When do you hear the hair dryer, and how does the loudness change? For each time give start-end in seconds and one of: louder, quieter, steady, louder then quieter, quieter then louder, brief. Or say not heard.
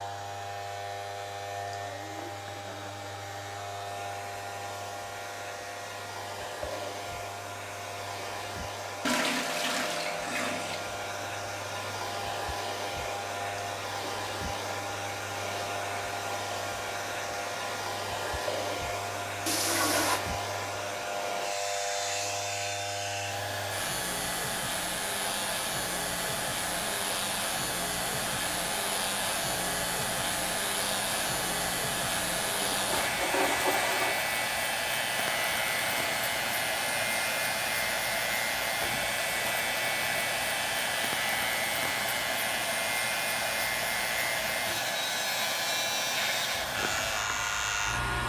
0.0-48.2 louder.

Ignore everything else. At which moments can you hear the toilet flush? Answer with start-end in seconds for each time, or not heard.
9.0-10.9, 19.4-20.2, 32.5-34.2.